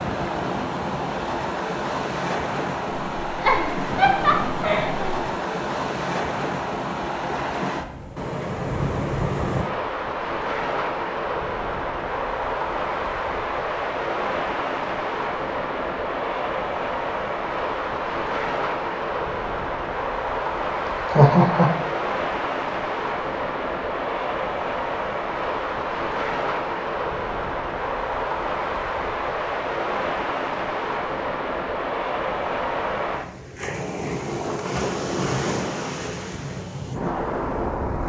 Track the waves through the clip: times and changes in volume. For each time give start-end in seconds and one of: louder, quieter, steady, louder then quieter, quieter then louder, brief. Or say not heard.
0.0-38.0 steady.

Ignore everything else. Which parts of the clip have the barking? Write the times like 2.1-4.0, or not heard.
not heard.